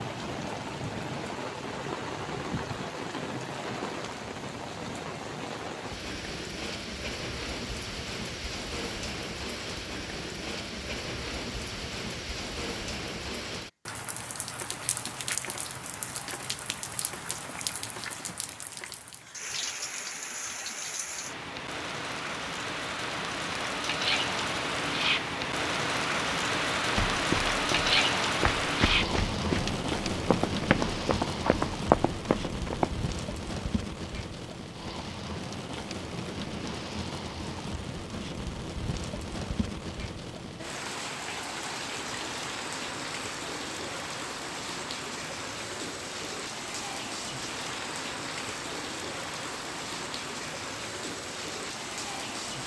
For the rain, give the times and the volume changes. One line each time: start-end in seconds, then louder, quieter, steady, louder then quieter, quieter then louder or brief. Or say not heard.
0.0-52.6 louder then quieter.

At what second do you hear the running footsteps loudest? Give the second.
32 s.